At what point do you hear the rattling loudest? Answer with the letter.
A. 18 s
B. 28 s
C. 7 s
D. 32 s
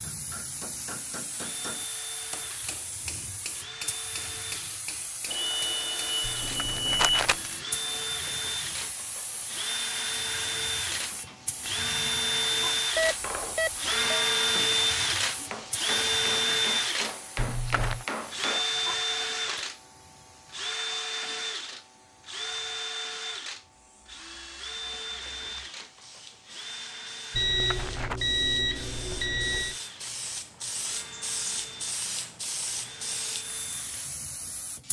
C.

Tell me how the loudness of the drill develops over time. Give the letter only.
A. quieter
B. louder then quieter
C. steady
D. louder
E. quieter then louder
B.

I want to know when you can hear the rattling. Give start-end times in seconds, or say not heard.
6.2-7.3, 17.4-18.1, 27.4-28.2.